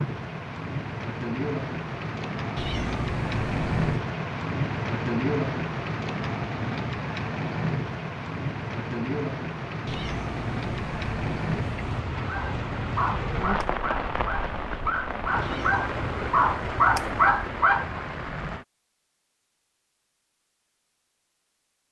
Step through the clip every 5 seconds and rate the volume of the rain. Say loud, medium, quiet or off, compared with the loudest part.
loud, loud, loud, loud, off.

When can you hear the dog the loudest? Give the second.
17 s.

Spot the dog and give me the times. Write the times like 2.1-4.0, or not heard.
12.2-17.9.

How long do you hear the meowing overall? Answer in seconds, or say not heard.
6 s.